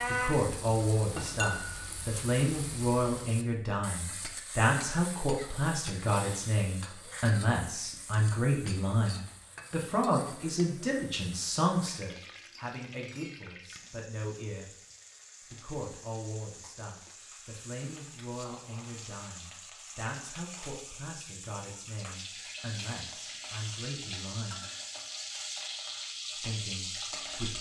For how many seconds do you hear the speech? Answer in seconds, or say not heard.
25 s.